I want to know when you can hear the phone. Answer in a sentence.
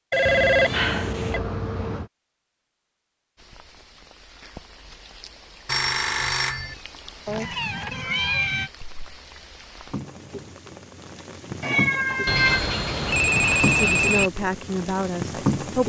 The phone can be heard from 0.1 to 1.4 s, from 5.7 to 6.8 s and from 12.2 to 14.3 s.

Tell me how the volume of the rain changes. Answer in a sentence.
The loudness of the rain goes up.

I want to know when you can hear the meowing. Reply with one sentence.
You can hear the meowing from 0.2 to 2.1 s, from 7.2 to 8.7 s and from 11.6 to 12.6 s.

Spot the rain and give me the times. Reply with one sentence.
You can hear the rain from 3.4 to 15.8 s.